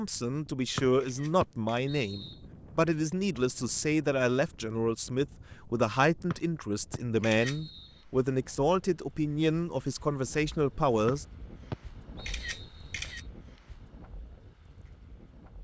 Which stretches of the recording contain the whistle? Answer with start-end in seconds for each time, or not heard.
0.8-2.4, 6.3-8.0, 11.1-13.2.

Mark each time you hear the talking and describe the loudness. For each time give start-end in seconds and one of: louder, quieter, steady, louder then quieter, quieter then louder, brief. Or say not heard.
0.0-11.2 steady.